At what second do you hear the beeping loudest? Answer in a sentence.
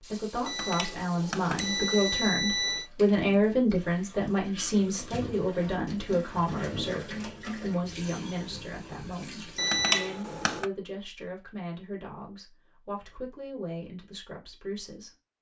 The loudest moment of the beeping is at 10 seconds.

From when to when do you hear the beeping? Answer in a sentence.
You can hear the beeping from 0.5 to 2.9 s and from 9.6 to 10.7 s.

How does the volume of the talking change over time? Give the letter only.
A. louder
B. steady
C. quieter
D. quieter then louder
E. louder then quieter
C.